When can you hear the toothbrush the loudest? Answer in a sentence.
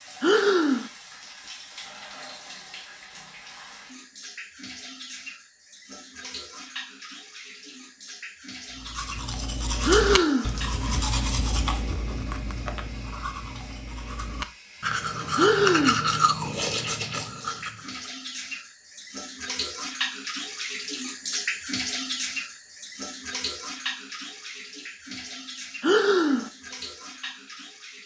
The loudest moment of the toothbrush is at 16 seconds.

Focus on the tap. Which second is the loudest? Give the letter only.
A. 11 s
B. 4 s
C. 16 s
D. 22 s
D.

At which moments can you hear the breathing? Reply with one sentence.
You can hear the breathing from 0.2 to 0.9 s, from 9.8 to 10.5 s, from 15.3 to 16.1 s and from 25.8 to 26.5 s.